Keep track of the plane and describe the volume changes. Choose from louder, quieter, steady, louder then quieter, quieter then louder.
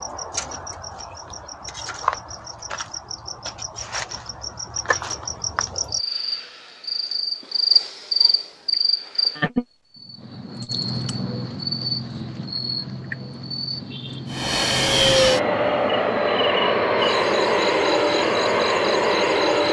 steady.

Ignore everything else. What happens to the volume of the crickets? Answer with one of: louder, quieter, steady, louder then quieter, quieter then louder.
louder then quieter.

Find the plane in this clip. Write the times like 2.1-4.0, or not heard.
14.3-19.6.